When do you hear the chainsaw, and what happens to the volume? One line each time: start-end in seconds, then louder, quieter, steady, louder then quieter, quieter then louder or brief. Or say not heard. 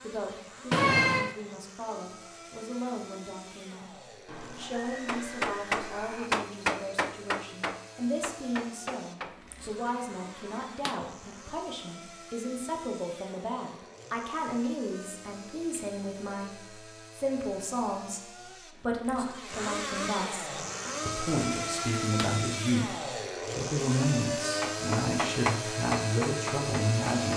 0.0-27.3 louder.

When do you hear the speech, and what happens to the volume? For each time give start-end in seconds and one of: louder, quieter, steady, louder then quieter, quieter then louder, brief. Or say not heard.
0.0-27.3 louder.